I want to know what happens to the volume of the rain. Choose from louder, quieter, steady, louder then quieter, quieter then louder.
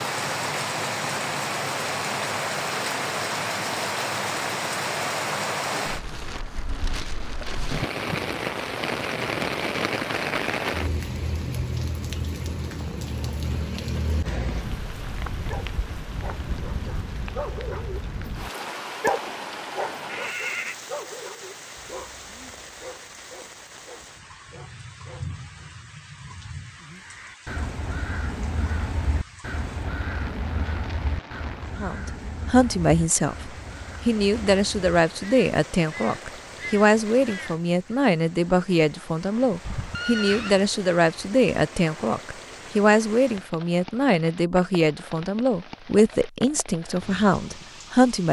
quieter.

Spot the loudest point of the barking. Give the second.
19 s.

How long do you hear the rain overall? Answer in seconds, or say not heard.
48 s.